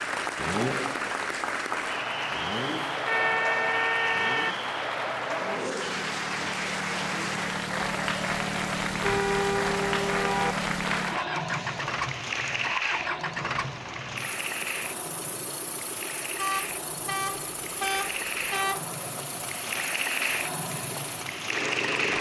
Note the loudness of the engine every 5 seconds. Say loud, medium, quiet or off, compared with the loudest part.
loud, loud, loud, medium, loud.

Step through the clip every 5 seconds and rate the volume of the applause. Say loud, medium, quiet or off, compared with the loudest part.
loud, loud, loud, medium, loud.